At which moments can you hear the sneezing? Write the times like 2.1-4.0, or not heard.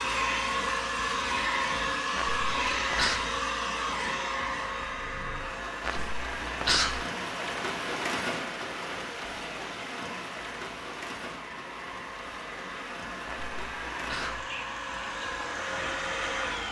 2.1-3.2, 5.8-7.0, 13.2-14.4.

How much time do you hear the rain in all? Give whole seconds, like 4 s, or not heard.
12 s.